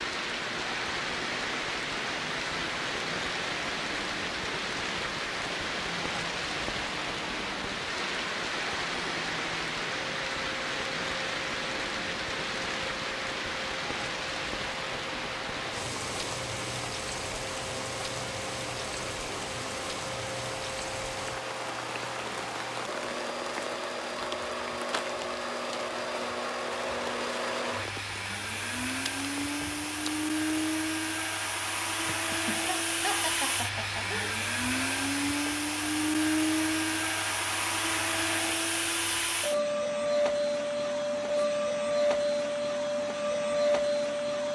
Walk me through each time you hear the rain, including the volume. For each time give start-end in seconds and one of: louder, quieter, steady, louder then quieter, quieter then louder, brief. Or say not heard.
0.0-30.7 quieter.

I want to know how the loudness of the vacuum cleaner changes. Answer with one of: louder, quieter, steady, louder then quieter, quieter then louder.
louder.